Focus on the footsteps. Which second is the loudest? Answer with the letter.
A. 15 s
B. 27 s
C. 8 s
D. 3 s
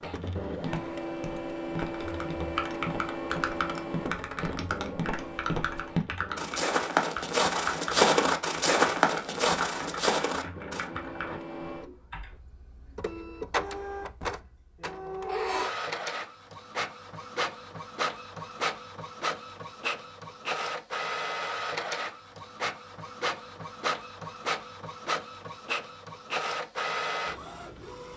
C.